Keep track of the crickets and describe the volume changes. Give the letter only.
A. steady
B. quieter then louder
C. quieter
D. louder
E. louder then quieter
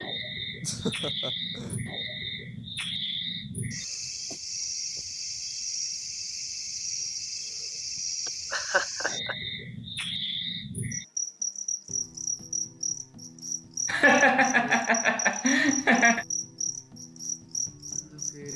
A.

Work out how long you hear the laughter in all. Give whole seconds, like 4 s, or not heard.
5 s.